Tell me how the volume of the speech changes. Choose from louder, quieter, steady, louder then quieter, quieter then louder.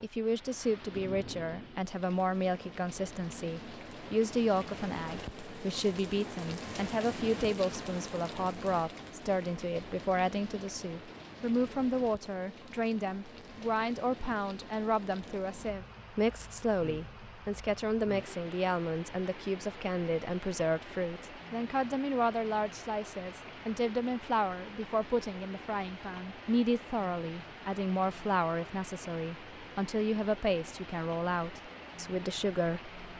steady.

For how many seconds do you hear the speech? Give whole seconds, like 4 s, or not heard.
33 s.